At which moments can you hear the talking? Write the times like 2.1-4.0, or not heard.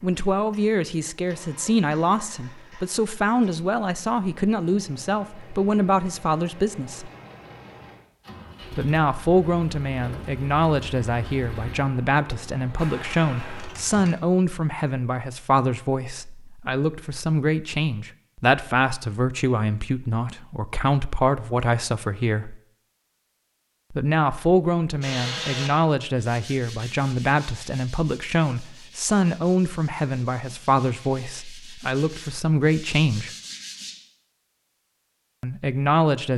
0.0-7.1, 8.7-22.6, 23.9-33.3, 35.4-36.3.